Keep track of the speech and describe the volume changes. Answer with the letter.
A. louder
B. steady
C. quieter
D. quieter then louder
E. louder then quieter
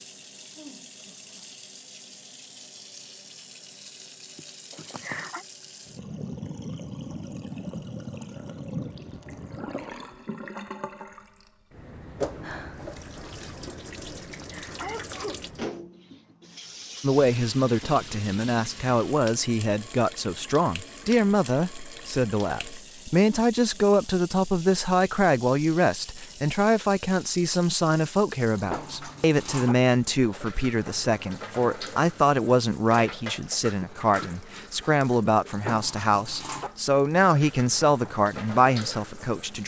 B.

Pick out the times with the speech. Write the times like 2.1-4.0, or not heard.
17.0-39.6.